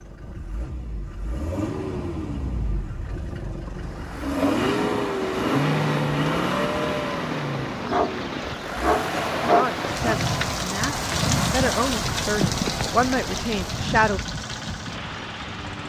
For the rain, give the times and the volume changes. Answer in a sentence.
The rain can be heard from 5.2 to 15.8 s, getting louder then quieter.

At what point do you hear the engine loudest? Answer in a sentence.
The loudest moment of the engine is at 6 seconds.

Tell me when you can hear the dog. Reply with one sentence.
You can hear the dog from 7.8 to 10.2 s.